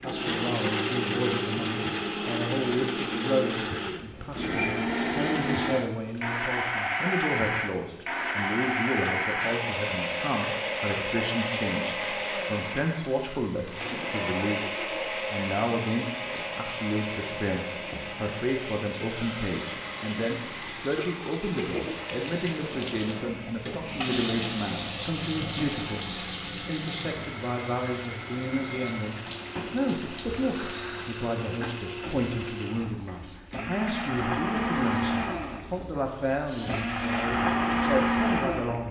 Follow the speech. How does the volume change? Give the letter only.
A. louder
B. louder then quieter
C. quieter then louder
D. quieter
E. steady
E.